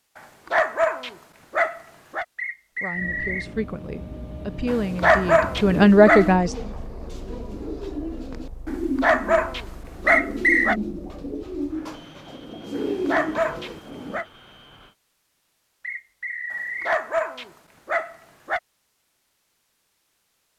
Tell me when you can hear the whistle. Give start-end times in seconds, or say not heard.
2.4-3.5, 10.1-10.8, 15.8-16.9.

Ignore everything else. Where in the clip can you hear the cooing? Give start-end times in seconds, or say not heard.
4.6-14.2.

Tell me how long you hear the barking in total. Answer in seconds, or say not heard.
9 s.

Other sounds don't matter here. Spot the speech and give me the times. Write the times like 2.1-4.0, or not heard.
2.8-6.5.